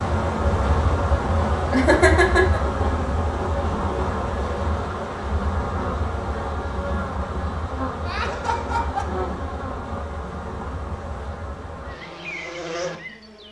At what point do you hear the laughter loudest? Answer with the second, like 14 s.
2 s.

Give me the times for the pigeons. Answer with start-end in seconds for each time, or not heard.
not heard.